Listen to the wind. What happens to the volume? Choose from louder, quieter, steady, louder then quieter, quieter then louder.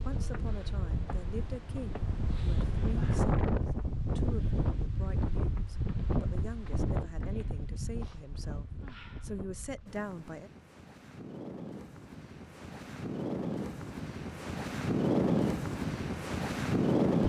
quieter then louder.